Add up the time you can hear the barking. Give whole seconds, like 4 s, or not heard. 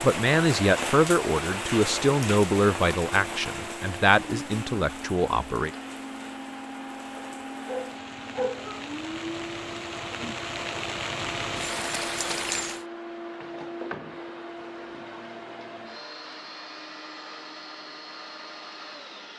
2 s.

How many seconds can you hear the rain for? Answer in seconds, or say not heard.
13 s.